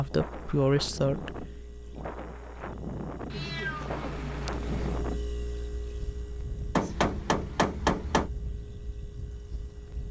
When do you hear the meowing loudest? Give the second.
4 s.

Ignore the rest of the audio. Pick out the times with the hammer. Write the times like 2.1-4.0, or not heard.
6.8-8.3.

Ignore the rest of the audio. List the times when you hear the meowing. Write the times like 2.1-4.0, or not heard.
3.3-5.0.